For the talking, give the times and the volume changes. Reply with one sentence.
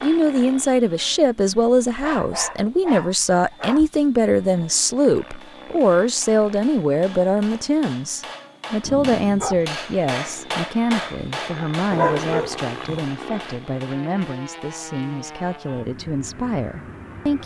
The talking can be heard from 0.0 to 17.4 s, getting quieter.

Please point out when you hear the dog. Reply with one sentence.
You can hear the dog from 1.9 to 3.9 s, from 8.8 to 9.7 s and from 11.9 to 13.1 s.